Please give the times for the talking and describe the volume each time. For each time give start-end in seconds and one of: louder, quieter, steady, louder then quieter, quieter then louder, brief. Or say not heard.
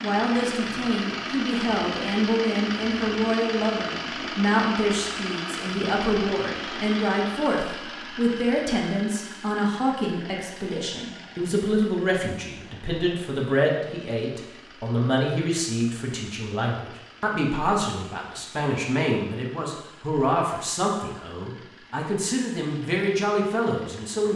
0.0-24.3 steady.